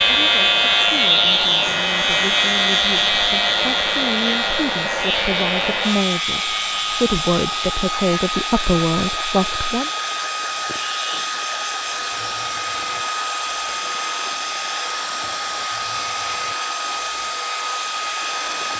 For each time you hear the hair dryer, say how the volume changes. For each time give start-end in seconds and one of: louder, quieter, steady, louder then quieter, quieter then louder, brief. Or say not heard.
0.0-18.7 steady.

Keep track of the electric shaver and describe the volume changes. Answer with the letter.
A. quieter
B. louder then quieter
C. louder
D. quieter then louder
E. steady
A.